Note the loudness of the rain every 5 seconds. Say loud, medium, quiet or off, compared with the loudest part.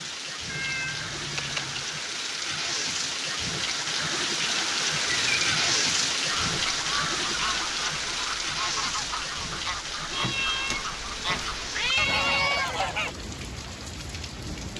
loud, loud, medium.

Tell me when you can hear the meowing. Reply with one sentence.
You can hear the meowing from 0.5 to 1.9 s, from 5.0 to 5.7 s and from 10.1 to 12.7 s.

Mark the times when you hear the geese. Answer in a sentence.
The geese can be heard from 6.3 to 13.2 s.